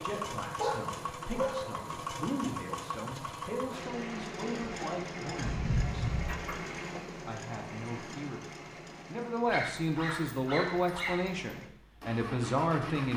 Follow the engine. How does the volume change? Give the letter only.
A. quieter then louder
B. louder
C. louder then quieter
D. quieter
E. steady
D.